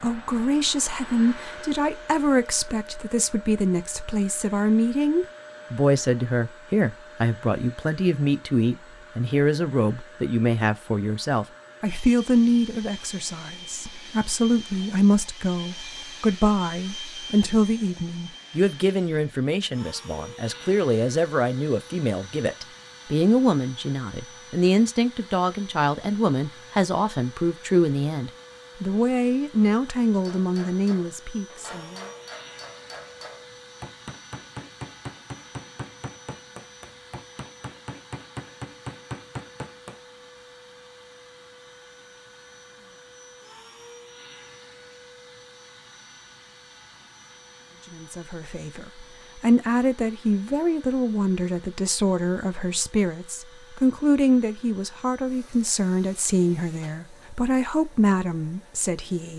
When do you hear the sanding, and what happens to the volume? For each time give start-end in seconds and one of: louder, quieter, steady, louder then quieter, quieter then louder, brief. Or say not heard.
not heard.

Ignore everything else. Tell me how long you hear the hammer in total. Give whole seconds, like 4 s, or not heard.
10 s.